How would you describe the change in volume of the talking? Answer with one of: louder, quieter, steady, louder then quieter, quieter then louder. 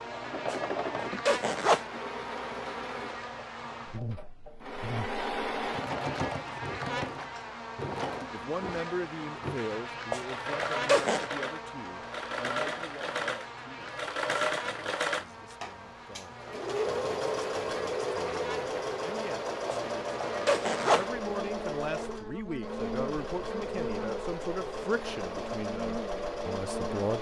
quieter then louder.